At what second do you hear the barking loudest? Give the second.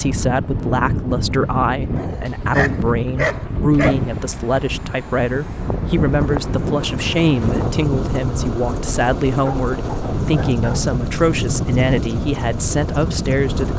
3 s.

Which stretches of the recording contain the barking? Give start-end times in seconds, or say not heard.
1.9-4.0, 9.4-10.9.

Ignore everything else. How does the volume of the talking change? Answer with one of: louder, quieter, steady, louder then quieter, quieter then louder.
steady.